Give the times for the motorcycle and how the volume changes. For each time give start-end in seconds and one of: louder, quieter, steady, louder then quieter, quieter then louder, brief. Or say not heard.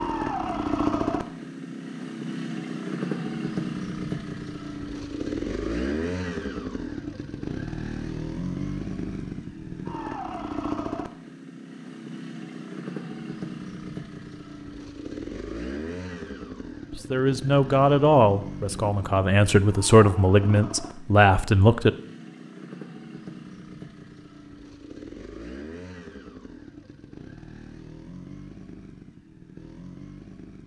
0.0-30.6 quieter.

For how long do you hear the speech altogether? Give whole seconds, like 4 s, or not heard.
5 s.